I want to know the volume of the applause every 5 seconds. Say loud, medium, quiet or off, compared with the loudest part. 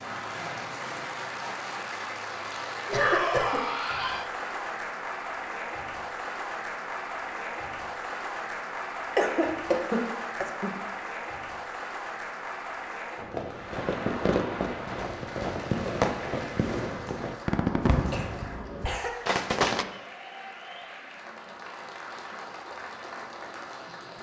loud, loud, loud, medium, medium.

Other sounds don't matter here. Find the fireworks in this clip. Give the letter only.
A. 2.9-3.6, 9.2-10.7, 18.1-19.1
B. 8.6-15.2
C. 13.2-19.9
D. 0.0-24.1
C.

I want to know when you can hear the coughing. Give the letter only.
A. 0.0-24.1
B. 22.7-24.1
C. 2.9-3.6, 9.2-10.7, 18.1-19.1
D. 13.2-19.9
C.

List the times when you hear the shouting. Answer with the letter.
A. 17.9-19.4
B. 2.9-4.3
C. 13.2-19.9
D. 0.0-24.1
B.